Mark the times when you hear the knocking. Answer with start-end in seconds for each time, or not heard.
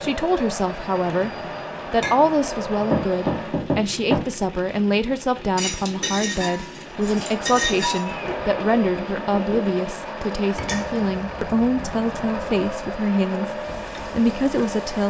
2.9-4.3, 8.1-9.6.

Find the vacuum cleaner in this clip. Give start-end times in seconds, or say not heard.
0.0-3.7, 6.8-15.0.